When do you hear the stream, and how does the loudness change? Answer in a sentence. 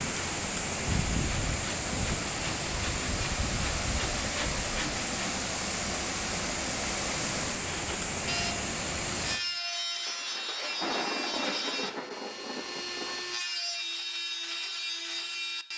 You can hear the stream from 0.0 to 9.4 s, at a steady volume.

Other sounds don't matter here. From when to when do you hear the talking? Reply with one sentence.
You can't hear the talking here.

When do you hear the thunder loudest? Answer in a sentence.
The loudest moment of the thunder is at 11 seconds.